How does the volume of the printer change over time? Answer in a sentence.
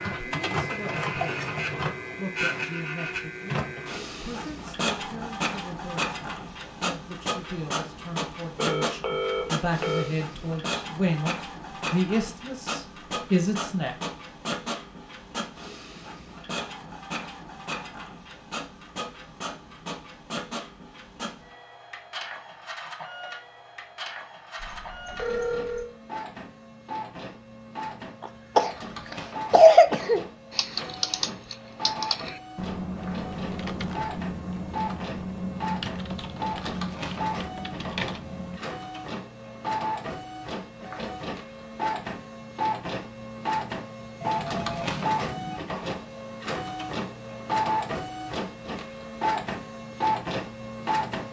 The volume of the printer goes down, then up.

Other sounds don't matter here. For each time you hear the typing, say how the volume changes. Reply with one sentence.
You can hear the typing from 30.5 to 38.6 s, at a steady volume.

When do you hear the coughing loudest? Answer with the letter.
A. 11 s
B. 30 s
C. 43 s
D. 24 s
B.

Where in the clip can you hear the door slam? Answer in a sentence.
The door slam can't be heard in this clip.